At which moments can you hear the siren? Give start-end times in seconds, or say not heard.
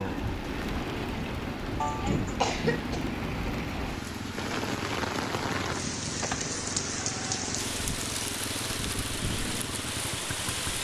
not heard.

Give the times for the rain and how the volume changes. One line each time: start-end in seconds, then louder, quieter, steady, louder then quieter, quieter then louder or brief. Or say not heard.
0.0-10.8 steady.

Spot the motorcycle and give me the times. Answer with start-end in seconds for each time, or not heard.
0.0-10.8.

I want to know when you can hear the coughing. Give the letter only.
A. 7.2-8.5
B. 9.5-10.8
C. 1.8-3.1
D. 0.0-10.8
C.